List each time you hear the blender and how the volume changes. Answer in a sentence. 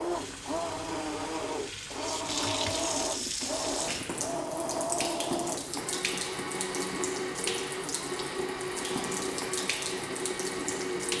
You can hear the blender from 0.0 to 11.1 s, at a steady volume.